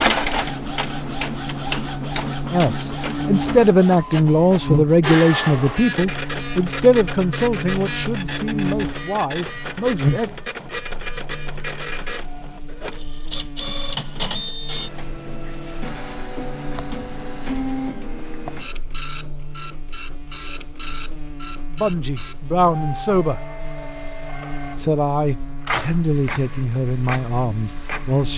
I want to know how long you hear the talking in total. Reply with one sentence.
You can hear the talking for 13 seconds altogether.